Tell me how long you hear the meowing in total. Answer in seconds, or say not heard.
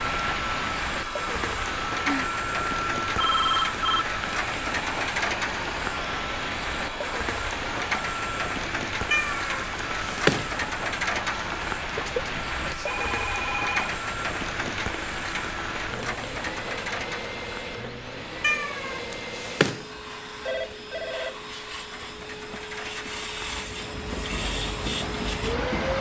3 s.